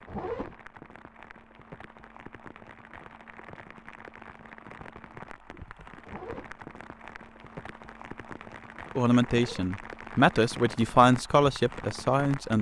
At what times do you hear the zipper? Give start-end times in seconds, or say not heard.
0.1-0.6, 6.0-6.5, 9.2-9.7.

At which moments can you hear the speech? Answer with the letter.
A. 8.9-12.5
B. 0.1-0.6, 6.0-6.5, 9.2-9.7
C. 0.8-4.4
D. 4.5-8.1
A.